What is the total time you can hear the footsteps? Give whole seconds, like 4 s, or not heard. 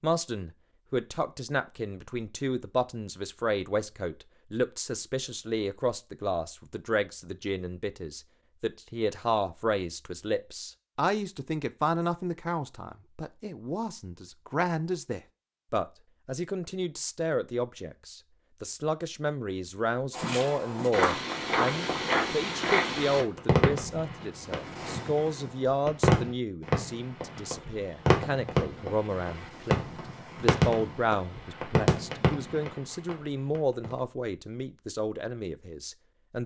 3 s.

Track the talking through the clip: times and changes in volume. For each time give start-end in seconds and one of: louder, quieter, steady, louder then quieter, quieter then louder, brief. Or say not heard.
0.0-36.4 steady.